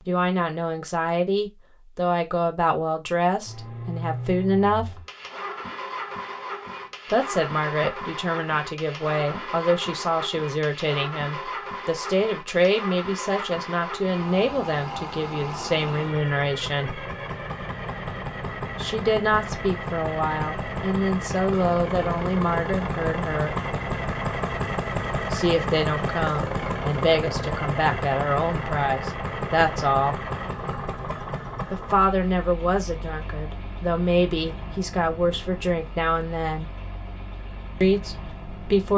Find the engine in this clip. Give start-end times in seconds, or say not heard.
3.5-38.9.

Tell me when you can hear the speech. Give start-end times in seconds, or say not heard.
0.1-5.0, 7.1-17.1, 18.8-23.6, 25.3-30.2, 31.7-36.7, 37.8-38.9.